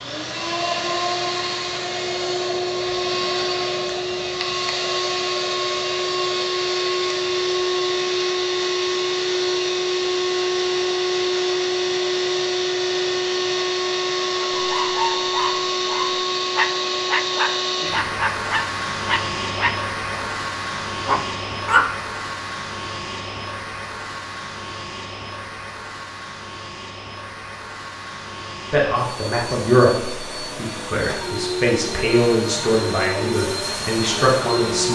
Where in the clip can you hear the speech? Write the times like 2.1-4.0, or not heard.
28.7-34.9.